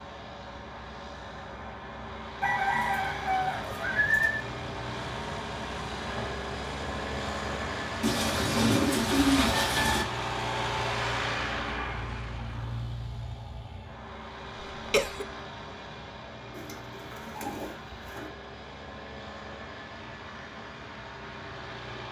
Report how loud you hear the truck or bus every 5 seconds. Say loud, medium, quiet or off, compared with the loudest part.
medium, loud, loud, medium, medium.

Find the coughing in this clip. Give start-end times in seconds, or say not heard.
14.8-15.2.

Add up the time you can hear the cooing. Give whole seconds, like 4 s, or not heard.
6 s.